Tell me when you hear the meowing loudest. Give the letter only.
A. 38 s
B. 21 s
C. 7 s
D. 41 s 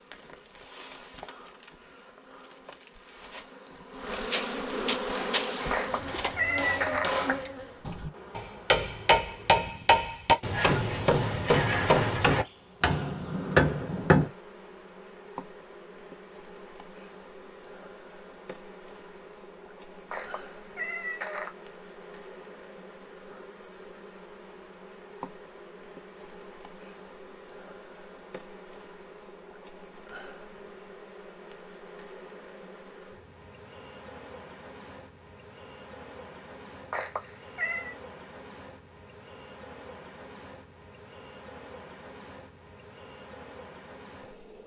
C.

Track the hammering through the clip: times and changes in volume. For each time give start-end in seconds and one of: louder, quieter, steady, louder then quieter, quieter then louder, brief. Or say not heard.
5.0-14.3 louder.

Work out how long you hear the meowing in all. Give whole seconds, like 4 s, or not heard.
4 s.